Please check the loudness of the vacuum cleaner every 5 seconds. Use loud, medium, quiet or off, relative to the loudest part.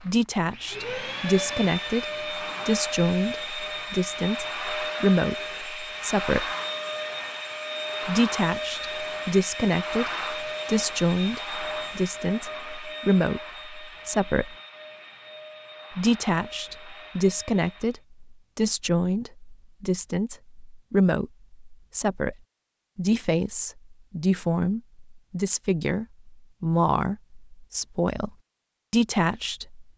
loud, loud, loud, quiet, off, off.